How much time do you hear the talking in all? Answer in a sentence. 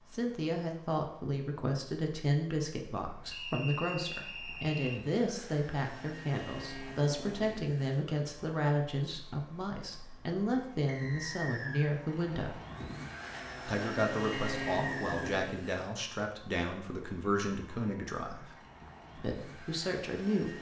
The talking can be heard for 19 seconds in total.